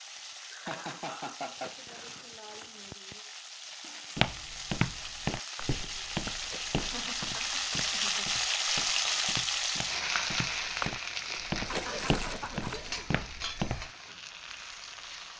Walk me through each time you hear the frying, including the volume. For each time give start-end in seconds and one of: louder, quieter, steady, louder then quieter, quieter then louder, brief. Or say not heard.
0.0-15.3 louder then quieter.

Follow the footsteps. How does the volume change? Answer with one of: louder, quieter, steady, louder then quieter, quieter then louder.
quieter then louder.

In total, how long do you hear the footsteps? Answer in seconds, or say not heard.
10 s.